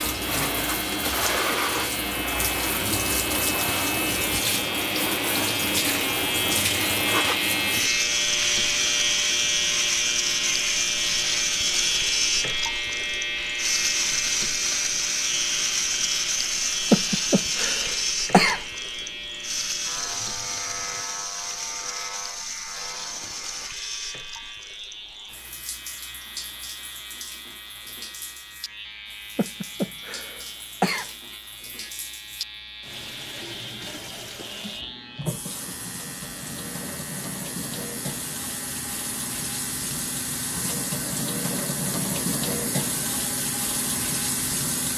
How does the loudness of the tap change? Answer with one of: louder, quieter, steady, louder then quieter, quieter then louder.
quieter then louder.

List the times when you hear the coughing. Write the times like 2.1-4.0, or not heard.
16.9-18.6, 29.4-31.1.